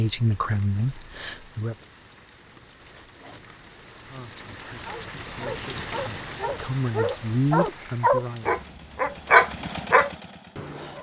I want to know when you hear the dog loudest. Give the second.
9 s.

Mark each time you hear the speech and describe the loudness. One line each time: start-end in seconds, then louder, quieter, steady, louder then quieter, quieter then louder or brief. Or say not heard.
0.0-1.8 brief
4.0-8.6 louder.